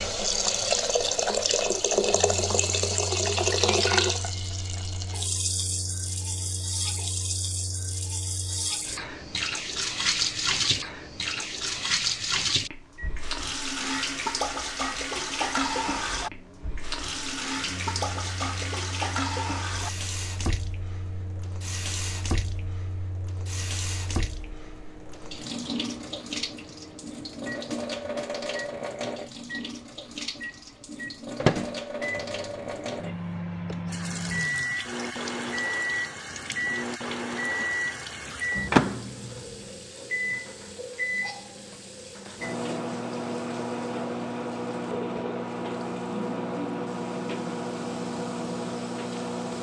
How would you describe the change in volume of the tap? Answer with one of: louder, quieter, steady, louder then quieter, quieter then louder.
quieter.